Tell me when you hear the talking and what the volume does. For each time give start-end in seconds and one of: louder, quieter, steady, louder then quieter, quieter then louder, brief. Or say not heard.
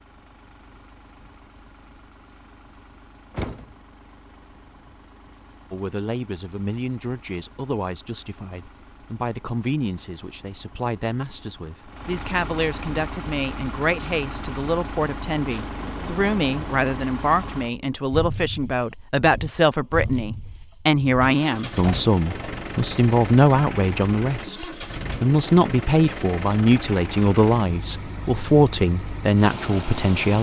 5.7-30.3 louder.